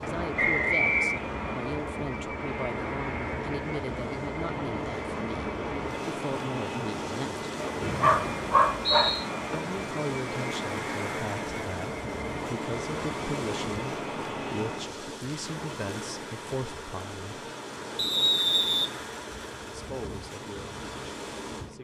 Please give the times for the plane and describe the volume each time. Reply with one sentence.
You can hear the plane from 0.0 to 15.0 s, at a steady volume.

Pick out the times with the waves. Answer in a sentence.
The waves can be heard from 0.0 to 21.7 s.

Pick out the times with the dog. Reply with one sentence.
You can hear the dog from 7.6 to 9.8 s.